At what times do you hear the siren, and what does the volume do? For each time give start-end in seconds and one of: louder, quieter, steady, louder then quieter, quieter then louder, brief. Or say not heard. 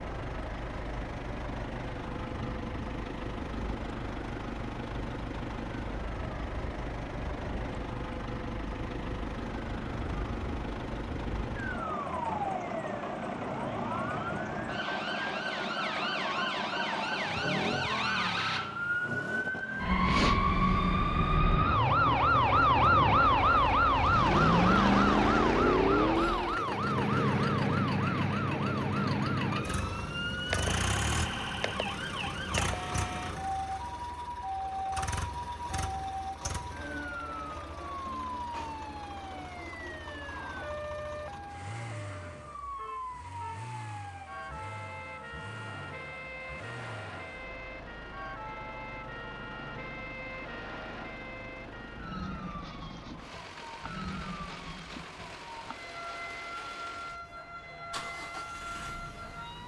0.0-59.6 louder then quieter.